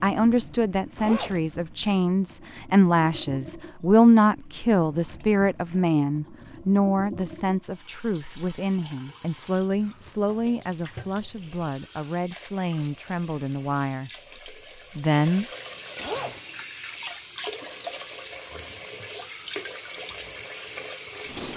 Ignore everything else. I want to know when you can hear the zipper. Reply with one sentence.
You can hear the zipper from 0.9 to 1.4 s and from 15.9 to 16.4 s.